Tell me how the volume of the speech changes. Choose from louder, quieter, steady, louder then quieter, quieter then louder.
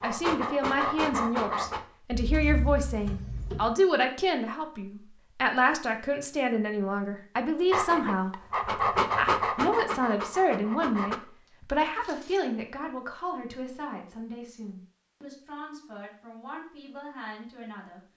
quieter.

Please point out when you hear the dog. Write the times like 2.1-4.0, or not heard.
0.0-1.9, 7.7-11.2.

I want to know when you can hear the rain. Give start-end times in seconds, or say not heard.
not heard.